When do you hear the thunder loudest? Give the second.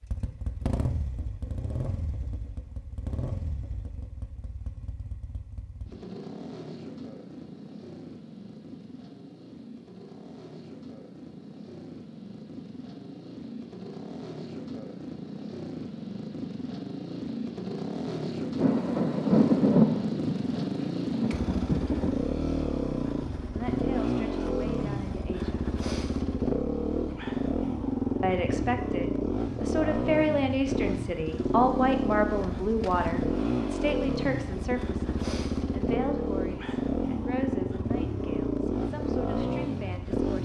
20 s.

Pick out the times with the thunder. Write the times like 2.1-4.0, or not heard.
18.6-22.1.